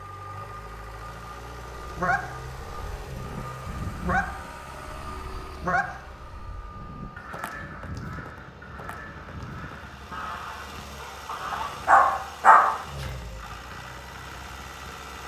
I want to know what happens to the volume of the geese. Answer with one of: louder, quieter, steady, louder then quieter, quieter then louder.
louder then quieter.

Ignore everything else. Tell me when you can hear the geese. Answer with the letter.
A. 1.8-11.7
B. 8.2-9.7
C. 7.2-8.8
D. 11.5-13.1
A.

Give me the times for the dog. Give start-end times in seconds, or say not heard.
11.5-13.1.